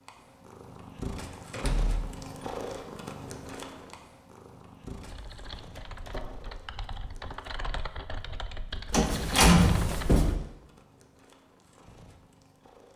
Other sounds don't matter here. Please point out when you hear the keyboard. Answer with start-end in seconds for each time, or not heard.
5.0-10.2.